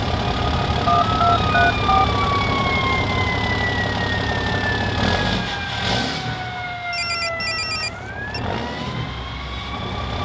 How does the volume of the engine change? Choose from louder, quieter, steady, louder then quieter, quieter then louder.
quieter.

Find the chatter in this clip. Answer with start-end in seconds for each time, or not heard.
not heard.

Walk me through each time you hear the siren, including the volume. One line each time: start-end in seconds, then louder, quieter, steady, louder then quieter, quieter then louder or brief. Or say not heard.
0.0-10.2 quieter.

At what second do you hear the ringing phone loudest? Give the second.
1 s.